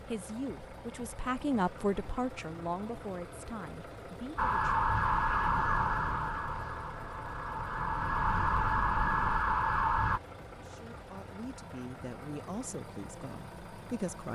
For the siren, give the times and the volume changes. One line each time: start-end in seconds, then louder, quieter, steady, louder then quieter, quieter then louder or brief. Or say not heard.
4.3-10.2 quieter then louder.